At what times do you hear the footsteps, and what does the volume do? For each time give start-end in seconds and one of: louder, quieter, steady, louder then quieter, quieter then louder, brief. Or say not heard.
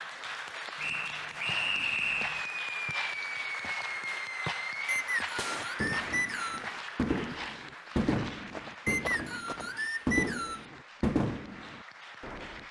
1.4-10.1 steady.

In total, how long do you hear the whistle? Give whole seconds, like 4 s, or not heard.
5 s.